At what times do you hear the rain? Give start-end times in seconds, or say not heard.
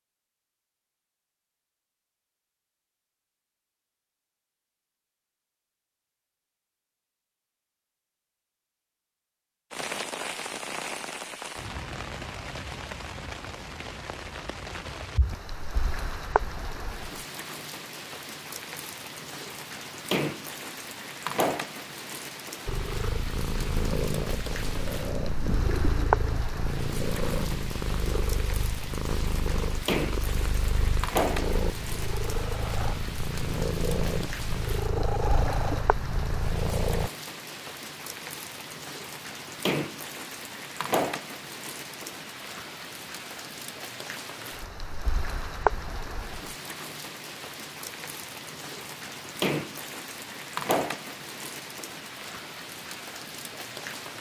9.7-54.1.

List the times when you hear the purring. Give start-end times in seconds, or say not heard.
22.6-37.1.